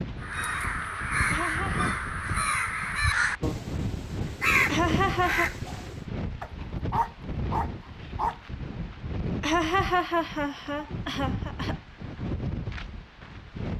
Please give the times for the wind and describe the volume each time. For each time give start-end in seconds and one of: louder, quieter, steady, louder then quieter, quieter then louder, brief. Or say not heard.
0.0-13.7 steady.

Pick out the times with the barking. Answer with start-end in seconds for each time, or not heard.
6.4-8.4.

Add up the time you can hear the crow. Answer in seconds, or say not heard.
6 s.